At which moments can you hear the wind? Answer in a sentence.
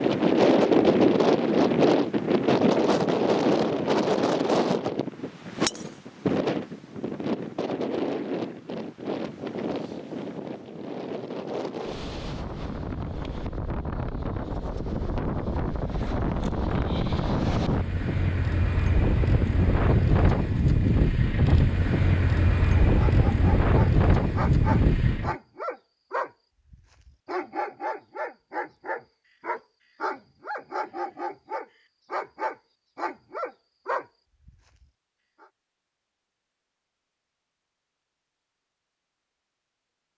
The wind can be heard from 0.0 to 25.4 s.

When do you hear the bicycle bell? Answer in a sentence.
You can't hear the bicycle bell here.